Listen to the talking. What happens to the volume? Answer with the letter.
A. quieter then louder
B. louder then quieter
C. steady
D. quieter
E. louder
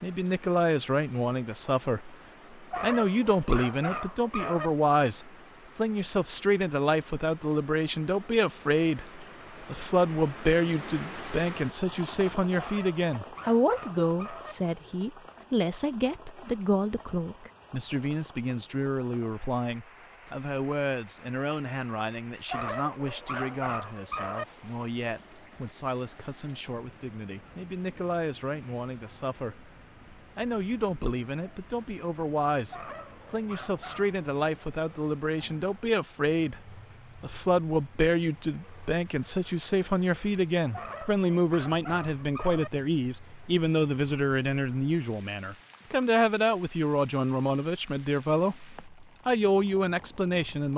A.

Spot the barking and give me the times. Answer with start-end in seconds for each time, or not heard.
2.7-4.7, 12.6-14.6, 22.4-24.4, 32.7-34.1, 40.7-42.7.